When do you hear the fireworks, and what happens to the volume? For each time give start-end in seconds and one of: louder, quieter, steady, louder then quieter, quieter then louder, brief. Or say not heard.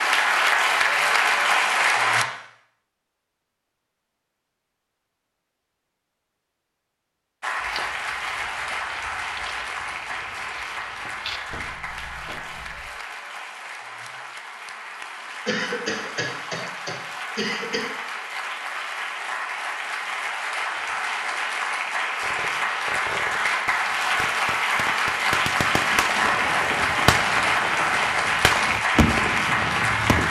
22.2-30.2 louder.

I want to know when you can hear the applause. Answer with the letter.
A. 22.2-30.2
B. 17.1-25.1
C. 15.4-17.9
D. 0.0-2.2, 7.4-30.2
D.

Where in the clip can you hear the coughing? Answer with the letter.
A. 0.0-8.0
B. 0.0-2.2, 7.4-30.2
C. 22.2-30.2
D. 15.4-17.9
D.